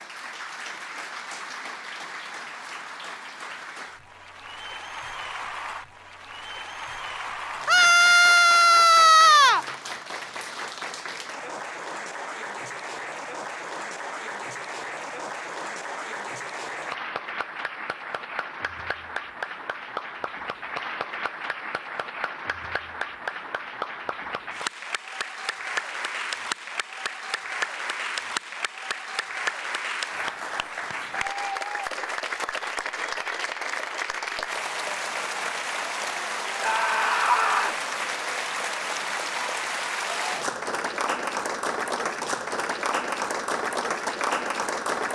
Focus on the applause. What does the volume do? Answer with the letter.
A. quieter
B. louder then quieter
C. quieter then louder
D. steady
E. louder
E.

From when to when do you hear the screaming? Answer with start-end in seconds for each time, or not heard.
7.7-9.7, 36.6-37.8.